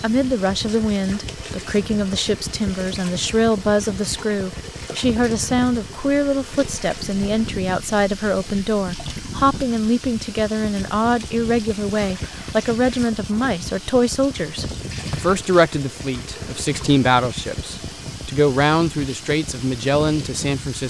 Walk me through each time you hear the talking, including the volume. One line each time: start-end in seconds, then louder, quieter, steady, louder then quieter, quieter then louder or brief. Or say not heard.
0.0-20.8 steady.